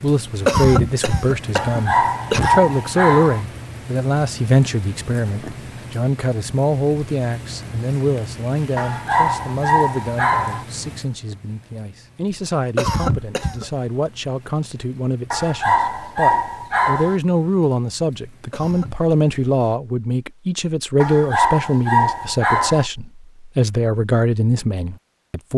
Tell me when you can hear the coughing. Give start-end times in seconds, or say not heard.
0.5-2.6, 12.8-13.7, 18.5-19.1.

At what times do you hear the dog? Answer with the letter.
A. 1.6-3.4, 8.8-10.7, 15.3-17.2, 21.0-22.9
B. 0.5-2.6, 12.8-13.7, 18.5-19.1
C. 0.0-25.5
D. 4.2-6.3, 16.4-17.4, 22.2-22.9
A.